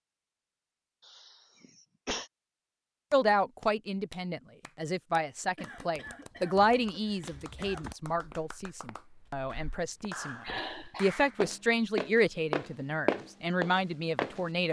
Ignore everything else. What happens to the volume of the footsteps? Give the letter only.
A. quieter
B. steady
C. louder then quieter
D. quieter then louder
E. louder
D.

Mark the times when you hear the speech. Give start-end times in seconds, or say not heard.
3.1-14.6.